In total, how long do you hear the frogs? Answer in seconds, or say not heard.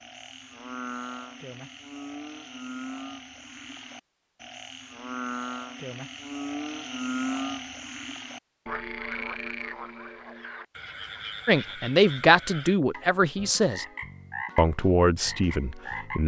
16 s.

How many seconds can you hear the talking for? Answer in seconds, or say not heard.
4 s.